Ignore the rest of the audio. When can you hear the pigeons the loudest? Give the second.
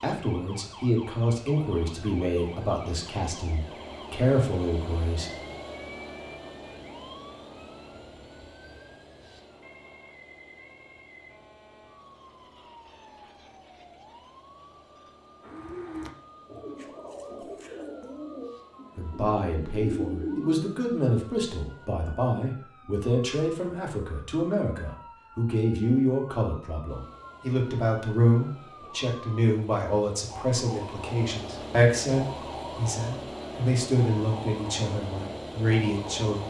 20 s.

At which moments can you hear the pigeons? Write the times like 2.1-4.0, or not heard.
15.4-20.8.